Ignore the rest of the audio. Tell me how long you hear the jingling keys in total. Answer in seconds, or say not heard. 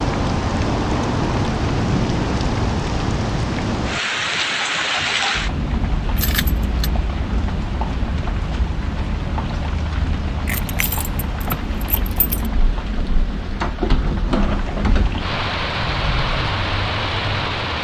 3 s.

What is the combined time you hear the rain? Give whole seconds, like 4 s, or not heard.
18 s.